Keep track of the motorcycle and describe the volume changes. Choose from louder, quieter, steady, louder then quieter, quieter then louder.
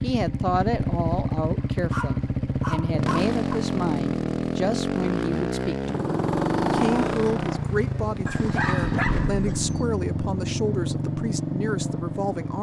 steady.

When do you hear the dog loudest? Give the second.
9 s.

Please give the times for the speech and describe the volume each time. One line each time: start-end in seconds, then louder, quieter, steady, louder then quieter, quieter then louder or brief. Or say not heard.
0.0-12.5 steady.